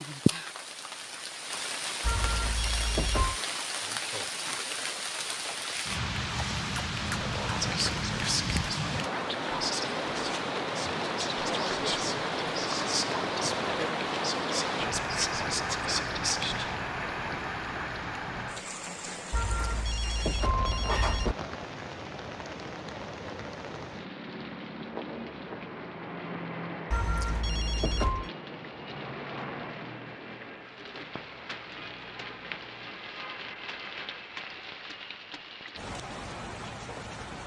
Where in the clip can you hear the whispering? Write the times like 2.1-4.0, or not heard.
7.0-16.8.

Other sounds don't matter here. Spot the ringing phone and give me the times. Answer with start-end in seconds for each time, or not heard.
2.0-3.4, 19.3-21.4, 26.9-28.3.